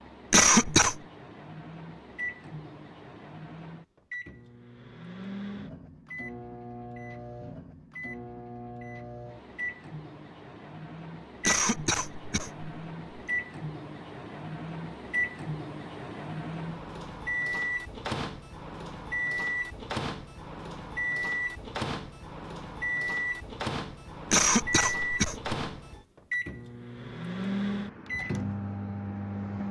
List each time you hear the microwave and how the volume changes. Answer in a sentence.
You can hear the microwave from 0.0 to 29.6 s, getting louder.